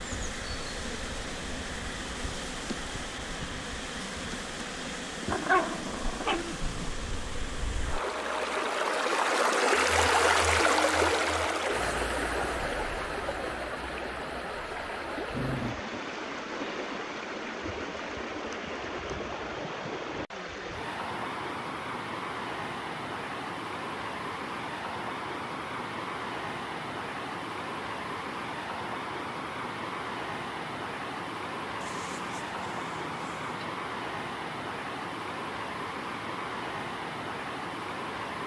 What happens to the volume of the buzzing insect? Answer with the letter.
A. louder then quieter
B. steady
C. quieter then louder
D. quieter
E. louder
B.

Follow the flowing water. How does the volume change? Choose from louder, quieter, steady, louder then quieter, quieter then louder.
louder then quieter.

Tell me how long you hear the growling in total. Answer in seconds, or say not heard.
4 s.